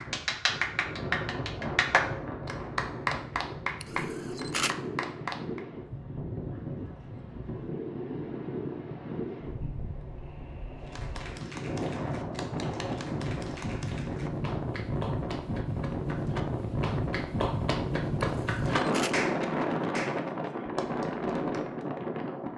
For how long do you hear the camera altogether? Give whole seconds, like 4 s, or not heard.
2 s.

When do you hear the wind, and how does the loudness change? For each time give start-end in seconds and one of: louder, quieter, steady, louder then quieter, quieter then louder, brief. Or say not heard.
0.0-22.5 louder.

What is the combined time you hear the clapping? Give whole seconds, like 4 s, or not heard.
17 s.